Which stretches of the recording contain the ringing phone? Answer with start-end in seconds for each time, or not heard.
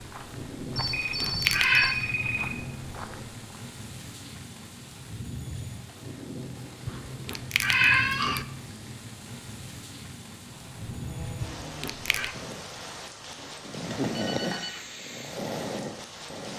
0.8-2.5, 13.2-14.8.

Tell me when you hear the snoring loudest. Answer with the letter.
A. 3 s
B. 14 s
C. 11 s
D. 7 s
B.